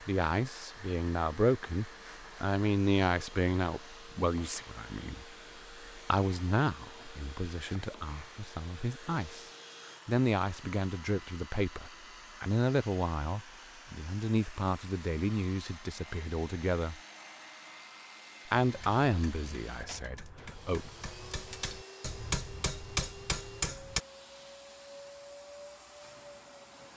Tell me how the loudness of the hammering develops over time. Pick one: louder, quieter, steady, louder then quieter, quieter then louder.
louder.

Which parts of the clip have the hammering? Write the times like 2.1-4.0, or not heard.
18.6-24.0.